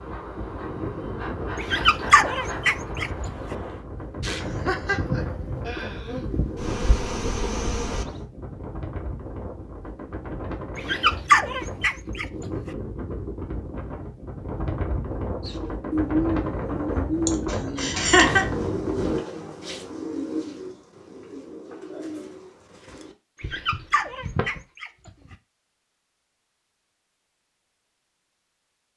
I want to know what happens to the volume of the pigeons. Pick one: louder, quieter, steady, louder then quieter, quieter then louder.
quieter.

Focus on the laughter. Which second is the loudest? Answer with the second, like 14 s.
18 s.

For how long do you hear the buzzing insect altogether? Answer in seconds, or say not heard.
8 s.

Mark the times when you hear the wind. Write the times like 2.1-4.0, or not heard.
0.0-19.2.